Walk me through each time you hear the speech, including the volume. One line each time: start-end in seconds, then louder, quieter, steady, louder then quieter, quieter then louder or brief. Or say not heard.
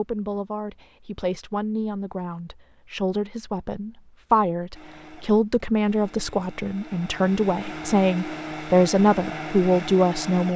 0.0-10.5 louder.